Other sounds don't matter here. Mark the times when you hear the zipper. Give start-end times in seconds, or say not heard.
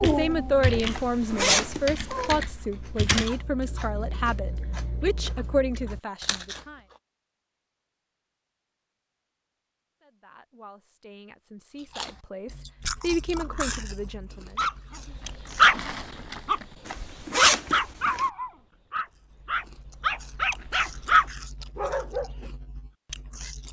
0.9-2.3, 16.9-18.2.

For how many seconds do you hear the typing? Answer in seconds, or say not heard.
3 s.